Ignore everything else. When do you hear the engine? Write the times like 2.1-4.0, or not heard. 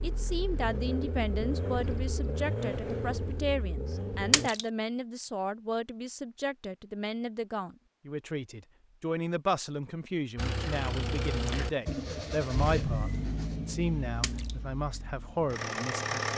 0.0-4.5, 10.3-16.3.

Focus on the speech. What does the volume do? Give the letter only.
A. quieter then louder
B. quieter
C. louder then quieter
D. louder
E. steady
E.